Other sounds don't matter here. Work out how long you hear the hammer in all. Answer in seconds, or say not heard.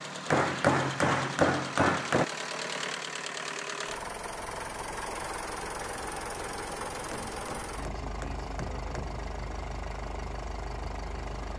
4 s.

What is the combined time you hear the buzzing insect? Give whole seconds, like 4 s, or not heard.
not heard.